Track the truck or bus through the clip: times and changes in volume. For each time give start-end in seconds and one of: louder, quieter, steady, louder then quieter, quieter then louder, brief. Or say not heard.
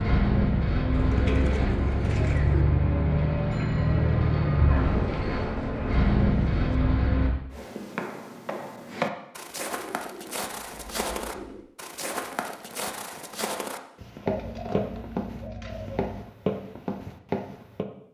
0.0-7.3 steady.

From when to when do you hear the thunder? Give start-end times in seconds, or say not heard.
not heard.